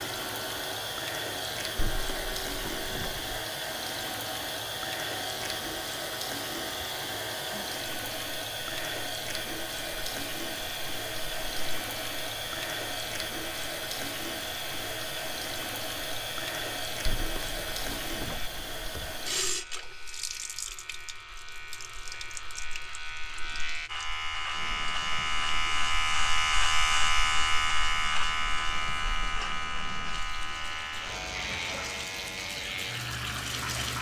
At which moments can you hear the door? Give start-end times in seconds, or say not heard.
1.8-3.3, 17.1-19.1.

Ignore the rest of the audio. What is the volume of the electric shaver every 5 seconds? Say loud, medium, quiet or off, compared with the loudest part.
quiet, quiet, quiet, quiet, medium, loud, medium.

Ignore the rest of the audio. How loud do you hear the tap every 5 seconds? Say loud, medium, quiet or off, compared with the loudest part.
loud, loud, loud, loud, medium, quiet, loud.